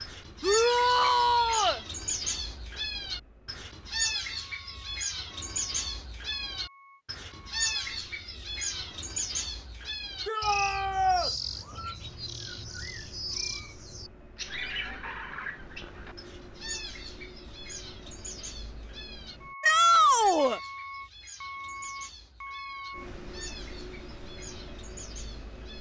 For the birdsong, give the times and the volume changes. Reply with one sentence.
You can hear the birdsong from 0.0 to 25.7 s, getting quieter.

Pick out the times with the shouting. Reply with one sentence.
You can hear the shouting from 0.4 to 1.8 s, from 10.2 to 11.3 s and from 19.6 to 20.6 s.